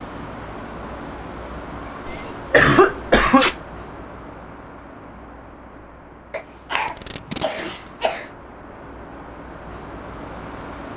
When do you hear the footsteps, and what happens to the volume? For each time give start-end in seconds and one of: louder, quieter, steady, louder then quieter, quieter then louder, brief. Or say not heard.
not heard.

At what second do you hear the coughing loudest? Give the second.
3 s.